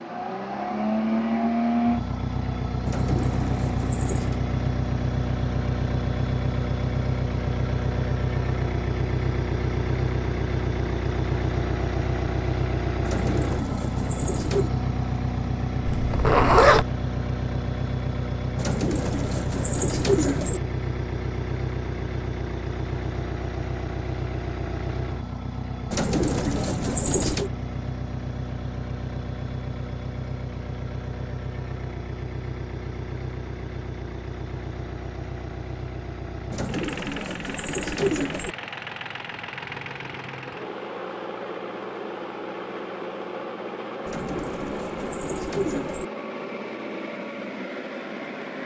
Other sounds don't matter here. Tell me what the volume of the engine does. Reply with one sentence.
The loudness of the engine goes down.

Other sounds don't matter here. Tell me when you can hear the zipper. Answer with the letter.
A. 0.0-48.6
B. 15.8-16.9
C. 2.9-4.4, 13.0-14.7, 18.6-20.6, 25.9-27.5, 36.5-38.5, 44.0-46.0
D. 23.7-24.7
B.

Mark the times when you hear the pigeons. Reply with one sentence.
The pigeons can be heard from 2.9 to 4.4 s, from 13.0 to 14.7 s, from 18.6 to 20.6 s, from 25.9 to 27.5 s, from 36.5 to 38.5 s and from 44.0 to 46.0 s.